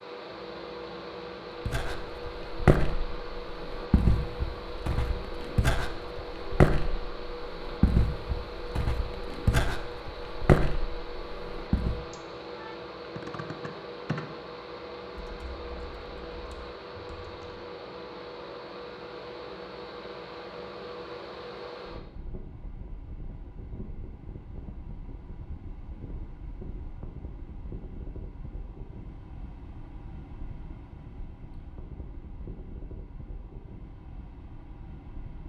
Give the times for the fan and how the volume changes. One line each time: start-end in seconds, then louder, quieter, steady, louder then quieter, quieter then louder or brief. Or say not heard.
0.0-35.4 quieter.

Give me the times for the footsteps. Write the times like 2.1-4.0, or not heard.
1.6-12.1.